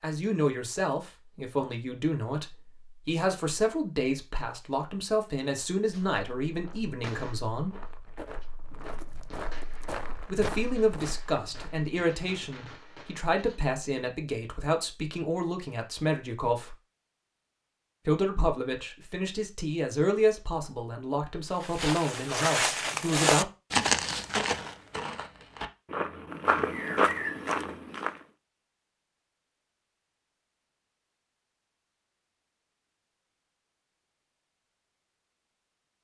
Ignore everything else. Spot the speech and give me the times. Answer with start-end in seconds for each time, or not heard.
0.0-7.8, 10.2-16.8, 18.1-23.4.